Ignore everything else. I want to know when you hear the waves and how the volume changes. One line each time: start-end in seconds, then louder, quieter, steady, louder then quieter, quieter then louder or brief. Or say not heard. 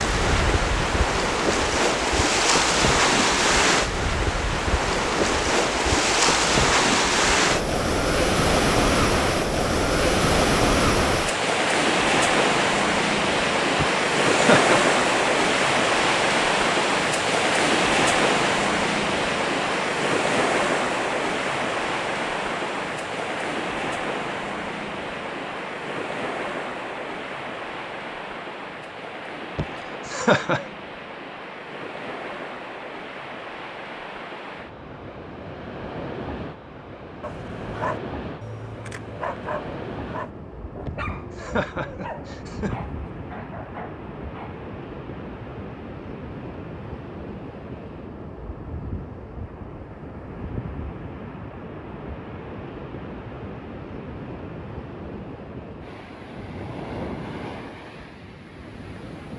0.0-59.3 quieter.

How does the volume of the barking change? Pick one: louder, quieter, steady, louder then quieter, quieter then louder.
quieter.